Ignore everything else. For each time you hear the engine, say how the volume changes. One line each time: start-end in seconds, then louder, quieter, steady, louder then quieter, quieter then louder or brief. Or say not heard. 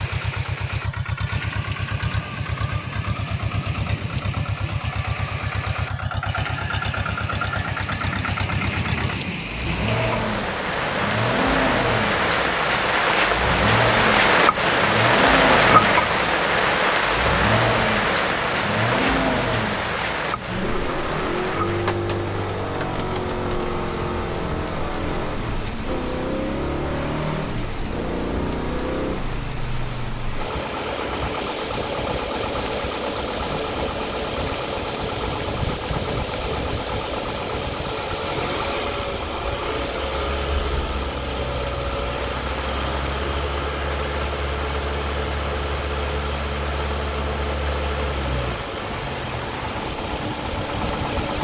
0.0-51.3 steady.